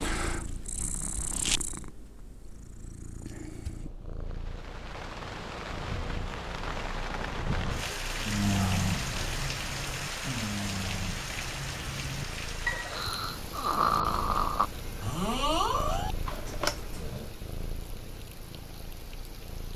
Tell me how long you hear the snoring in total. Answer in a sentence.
The snoring can be heard for 9 seconds in total.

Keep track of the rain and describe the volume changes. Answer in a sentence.
The loudness of the rain goes down.